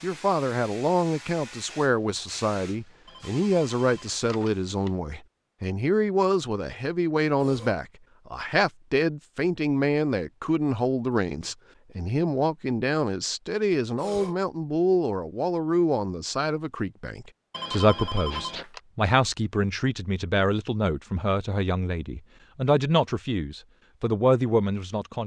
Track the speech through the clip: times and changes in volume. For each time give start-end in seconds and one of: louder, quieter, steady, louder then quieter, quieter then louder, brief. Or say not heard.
0.0-25.2 steady.